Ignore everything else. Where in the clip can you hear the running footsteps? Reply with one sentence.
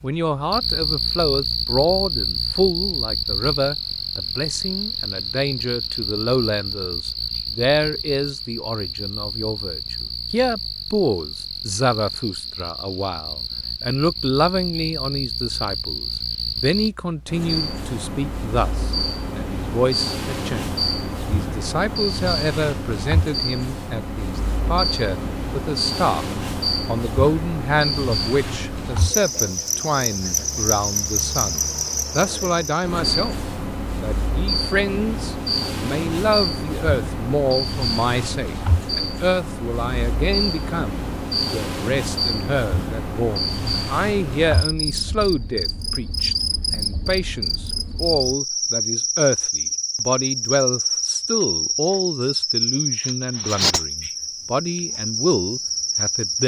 The running footsteps can't be heard in this clip.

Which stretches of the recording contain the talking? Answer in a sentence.
The talking can be heard from 0.0 to 26.2 s, from 26.9 to 33.4 s and from 34.0 to 56.4 s.